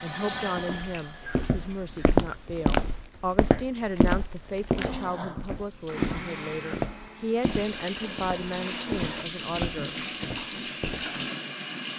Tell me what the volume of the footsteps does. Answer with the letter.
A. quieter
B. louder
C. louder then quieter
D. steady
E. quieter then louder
A.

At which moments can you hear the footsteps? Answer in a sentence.
You can hear the footsteps from 0.5 to 11.1 s.